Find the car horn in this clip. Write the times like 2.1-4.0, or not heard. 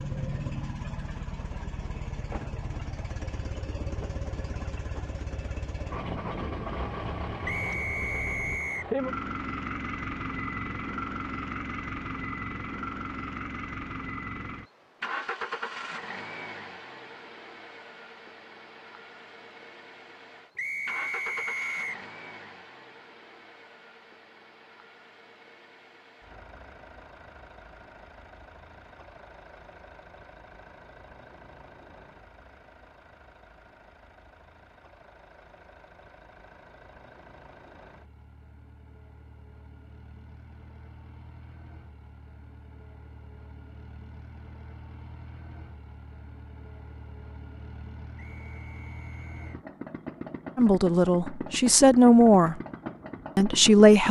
not heard.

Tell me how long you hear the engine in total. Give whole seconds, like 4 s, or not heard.
54 s.